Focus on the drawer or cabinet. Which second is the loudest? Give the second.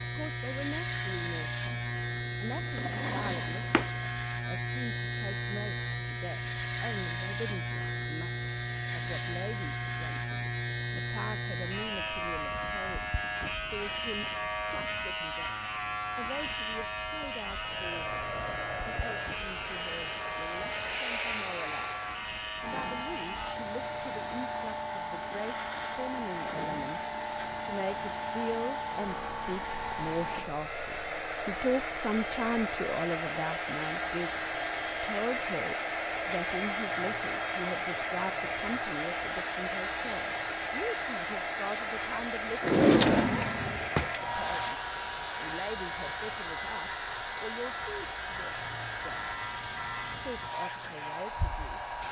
43 s.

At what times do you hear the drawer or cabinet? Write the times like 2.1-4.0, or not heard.
2.8-3.9, 42.6-44.1.